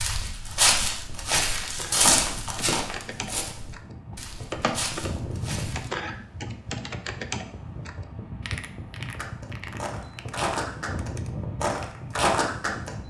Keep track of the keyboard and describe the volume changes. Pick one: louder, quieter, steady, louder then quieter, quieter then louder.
louder then quieter.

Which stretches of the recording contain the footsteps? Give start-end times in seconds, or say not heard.
0.0-5.9, 9.2-13.0.